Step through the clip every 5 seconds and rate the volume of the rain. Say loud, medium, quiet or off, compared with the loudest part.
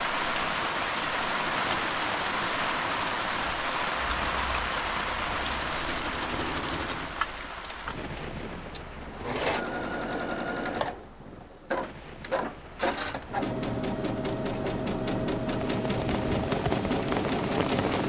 loud, medium, quiet, medium.